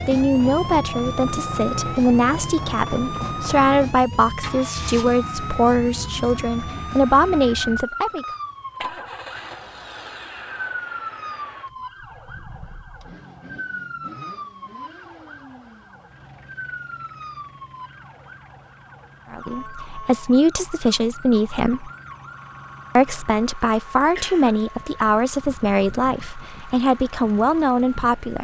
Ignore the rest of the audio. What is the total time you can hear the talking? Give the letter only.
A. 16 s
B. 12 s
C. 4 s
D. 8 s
A.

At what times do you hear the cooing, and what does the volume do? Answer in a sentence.
The cooing can't be heard in this clip.